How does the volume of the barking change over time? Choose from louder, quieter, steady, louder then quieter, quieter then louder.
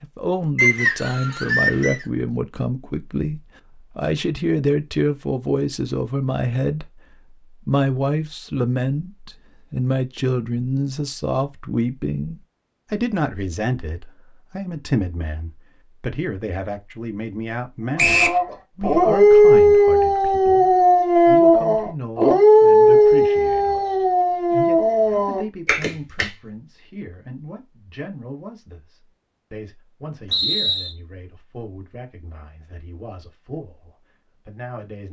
quieter.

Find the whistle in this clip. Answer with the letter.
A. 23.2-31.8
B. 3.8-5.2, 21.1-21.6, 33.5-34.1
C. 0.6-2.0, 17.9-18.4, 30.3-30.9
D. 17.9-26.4
C.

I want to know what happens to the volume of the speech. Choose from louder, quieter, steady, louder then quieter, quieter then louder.
quieter.